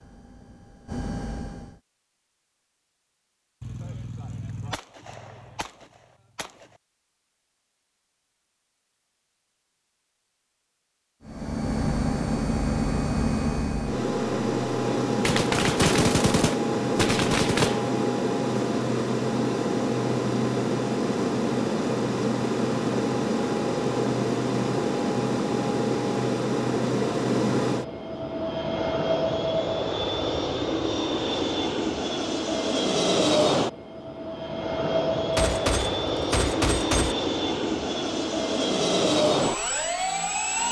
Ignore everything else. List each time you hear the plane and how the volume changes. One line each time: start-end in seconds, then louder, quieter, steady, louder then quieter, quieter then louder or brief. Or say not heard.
0.0-1.8 brief
11.2-40.6 steady.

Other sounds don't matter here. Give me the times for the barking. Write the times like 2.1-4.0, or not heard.
not heard.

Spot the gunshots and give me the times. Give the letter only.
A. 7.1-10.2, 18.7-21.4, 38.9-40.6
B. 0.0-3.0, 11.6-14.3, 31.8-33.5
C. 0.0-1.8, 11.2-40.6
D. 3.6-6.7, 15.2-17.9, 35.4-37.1
D.